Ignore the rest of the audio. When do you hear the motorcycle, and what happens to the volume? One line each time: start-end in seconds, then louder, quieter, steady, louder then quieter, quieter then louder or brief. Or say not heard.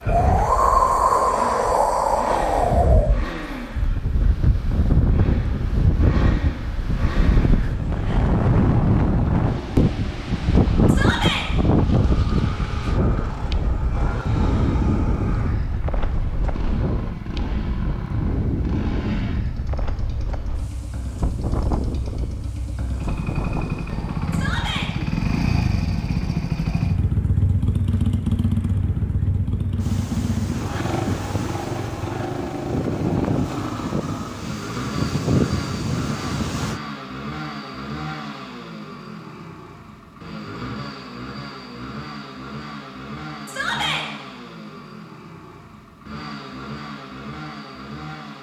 0.0-48.3 louder then quieter.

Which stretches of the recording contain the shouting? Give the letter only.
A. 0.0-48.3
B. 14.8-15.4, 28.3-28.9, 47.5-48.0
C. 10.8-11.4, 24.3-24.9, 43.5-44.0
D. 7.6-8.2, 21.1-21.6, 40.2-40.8
C.